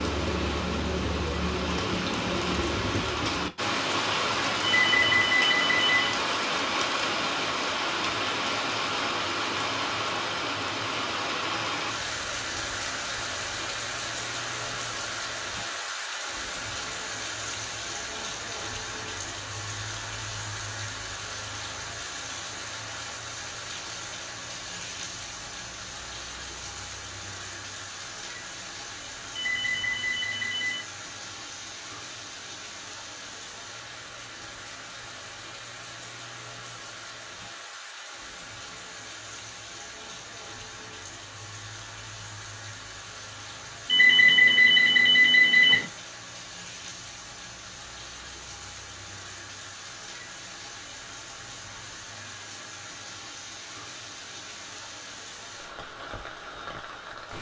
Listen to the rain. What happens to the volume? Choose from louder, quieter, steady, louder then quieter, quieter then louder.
quieter.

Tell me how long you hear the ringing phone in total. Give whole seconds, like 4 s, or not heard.
5 s.